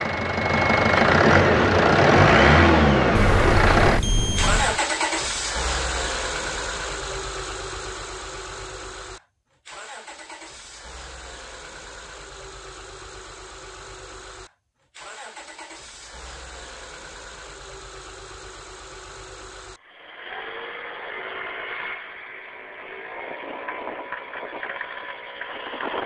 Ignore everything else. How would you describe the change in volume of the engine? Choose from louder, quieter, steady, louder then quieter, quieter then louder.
quieter then louder.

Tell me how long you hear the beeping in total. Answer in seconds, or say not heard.
2 s.